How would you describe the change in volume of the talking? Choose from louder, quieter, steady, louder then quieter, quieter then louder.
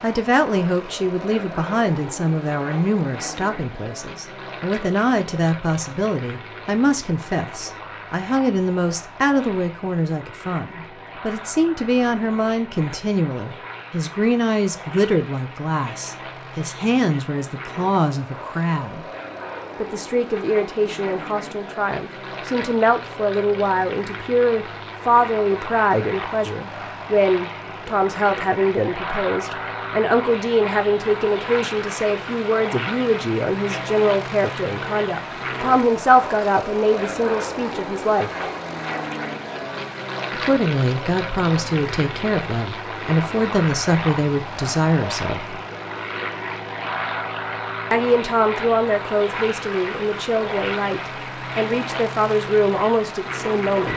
steady.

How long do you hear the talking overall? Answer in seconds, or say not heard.
49 s.